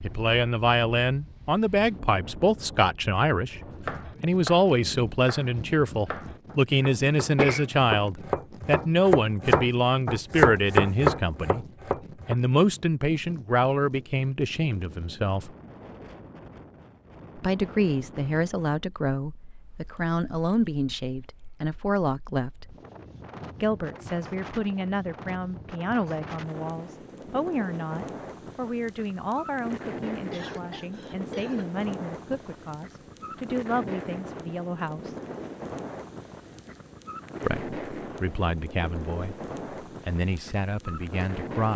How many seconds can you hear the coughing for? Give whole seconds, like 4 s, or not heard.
2 s.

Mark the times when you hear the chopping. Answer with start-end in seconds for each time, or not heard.
3.5-12.3.